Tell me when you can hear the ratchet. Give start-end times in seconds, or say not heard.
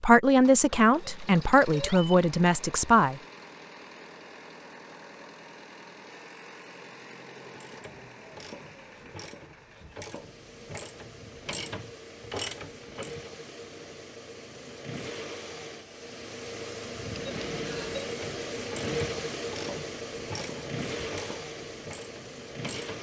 7.5-13.2, 18.0-22.9.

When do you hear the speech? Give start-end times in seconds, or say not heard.
0.0-3.2.